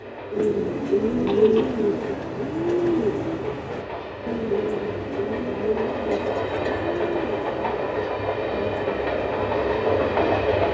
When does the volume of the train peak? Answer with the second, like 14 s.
10 s.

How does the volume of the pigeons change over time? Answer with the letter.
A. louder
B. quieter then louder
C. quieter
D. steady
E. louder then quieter
C.